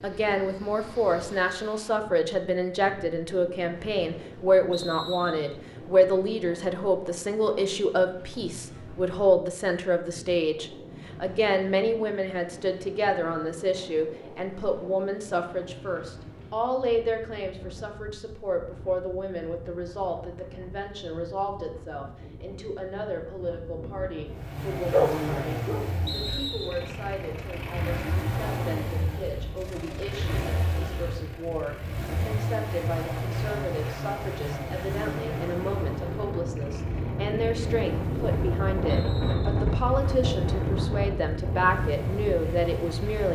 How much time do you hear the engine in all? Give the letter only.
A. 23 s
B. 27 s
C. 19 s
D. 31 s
C.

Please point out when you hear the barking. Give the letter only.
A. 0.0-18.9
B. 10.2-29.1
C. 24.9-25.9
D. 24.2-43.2
C.